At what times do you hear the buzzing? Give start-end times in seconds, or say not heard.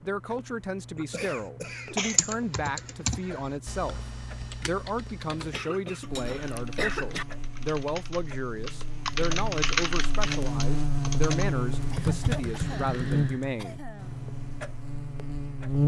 6.0-15.8.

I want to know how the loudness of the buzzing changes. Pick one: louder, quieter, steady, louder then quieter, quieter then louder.
louder then quieter.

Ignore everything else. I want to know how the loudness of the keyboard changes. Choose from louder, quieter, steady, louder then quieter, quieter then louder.
quieter then louder.